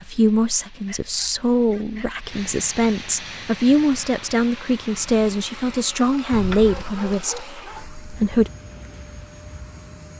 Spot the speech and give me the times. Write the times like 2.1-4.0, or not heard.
0.0-8.5.